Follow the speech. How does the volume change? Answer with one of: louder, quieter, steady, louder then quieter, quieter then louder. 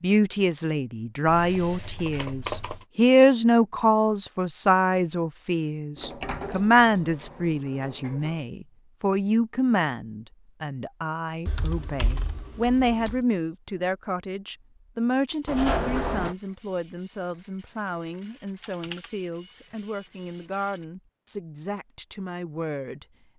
quieter.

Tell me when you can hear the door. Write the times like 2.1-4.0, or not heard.
6.0-8.4, 15.4-16.4.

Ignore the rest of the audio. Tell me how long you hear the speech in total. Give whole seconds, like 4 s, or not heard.
23 s.